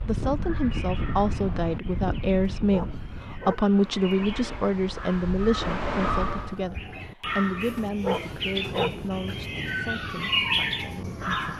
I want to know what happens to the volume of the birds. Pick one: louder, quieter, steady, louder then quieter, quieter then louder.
louder.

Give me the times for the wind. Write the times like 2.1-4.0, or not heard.
0.0-6.6.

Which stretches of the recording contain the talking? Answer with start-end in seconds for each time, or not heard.
0.0-11.5.